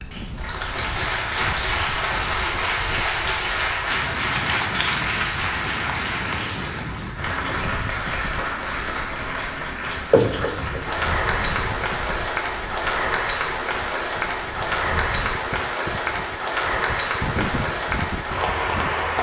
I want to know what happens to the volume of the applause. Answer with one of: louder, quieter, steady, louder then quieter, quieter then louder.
steady.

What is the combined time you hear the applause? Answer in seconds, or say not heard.
19 s.